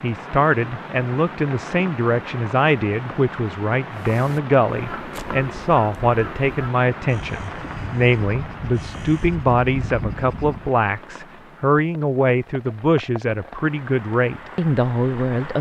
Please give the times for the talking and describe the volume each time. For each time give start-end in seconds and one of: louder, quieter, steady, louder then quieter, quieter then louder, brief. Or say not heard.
0.0-15.5 steady.